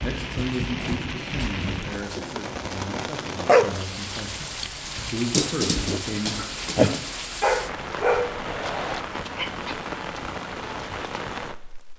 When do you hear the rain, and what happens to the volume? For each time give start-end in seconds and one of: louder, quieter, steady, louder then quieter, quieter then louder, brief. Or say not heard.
0.0-11.9 steady.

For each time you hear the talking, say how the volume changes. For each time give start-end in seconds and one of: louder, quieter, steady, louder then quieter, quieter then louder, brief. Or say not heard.
0.0-6.9 quieter then louder.